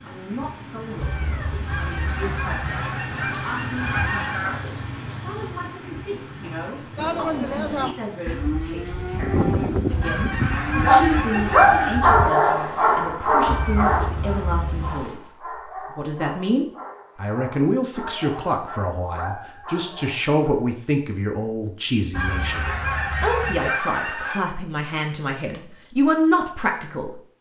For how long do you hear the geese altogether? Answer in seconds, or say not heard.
7 s.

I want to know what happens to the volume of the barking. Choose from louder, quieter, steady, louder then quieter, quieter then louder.
quieter.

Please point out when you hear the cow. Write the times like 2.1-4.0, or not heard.
7.0-12.3.